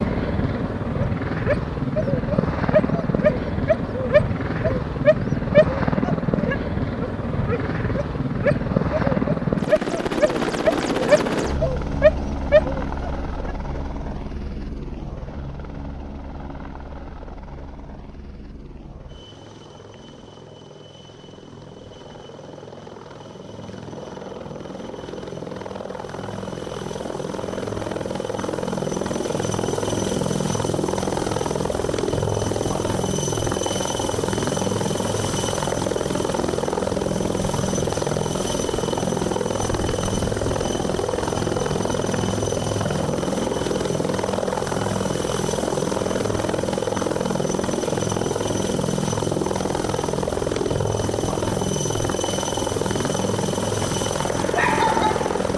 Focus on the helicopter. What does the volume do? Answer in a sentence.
The loudness of the helicopter goes down, then up.